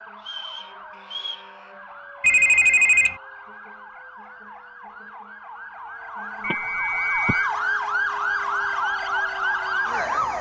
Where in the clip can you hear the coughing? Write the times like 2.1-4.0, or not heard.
not heard.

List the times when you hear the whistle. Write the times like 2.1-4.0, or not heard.
0.2-1.4, 6.4-7.5.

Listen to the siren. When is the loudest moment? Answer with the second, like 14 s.
8 s.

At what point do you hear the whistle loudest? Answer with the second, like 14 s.
7 s.